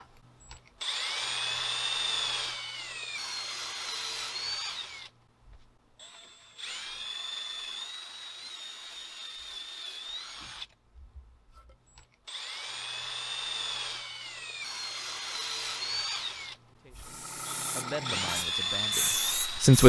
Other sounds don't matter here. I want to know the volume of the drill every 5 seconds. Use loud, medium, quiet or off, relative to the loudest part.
loud, medium, medium, loud.